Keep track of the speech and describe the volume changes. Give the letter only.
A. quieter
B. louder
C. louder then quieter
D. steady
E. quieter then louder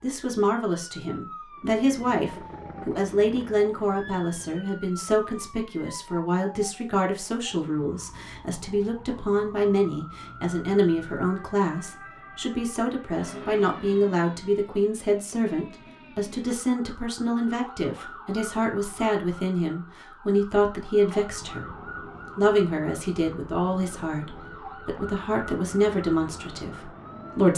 D.